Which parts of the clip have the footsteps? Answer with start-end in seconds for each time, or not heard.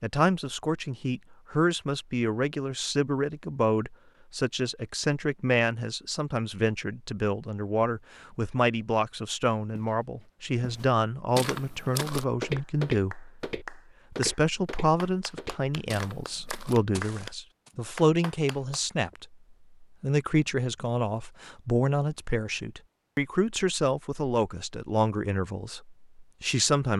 9.8-17.7.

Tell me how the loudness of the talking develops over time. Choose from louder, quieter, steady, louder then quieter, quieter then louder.
steady.